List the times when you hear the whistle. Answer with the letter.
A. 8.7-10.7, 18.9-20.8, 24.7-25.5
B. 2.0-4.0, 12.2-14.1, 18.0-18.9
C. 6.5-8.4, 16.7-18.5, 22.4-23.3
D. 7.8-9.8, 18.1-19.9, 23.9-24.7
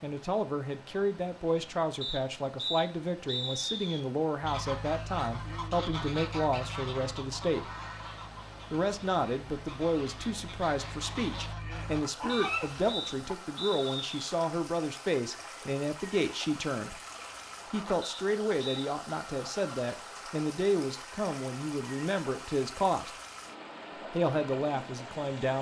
B.